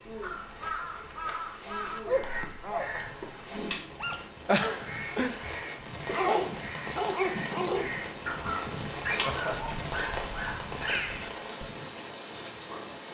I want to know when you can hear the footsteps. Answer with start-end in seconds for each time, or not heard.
not heard.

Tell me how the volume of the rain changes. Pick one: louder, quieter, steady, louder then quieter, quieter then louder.
louder.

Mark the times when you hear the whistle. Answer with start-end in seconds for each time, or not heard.
not heard.